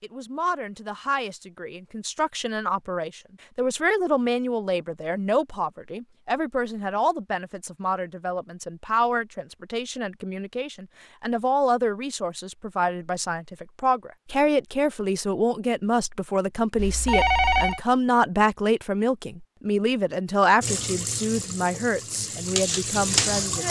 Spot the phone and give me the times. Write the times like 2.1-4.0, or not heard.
16.8-17.8.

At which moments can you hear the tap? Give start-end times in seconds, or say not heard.
20.6-23.6.